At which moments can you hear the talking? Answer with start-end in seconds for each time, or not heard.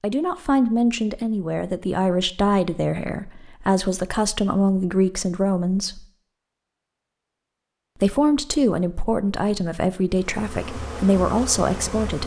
0.0-6.0, 8.0-12.2.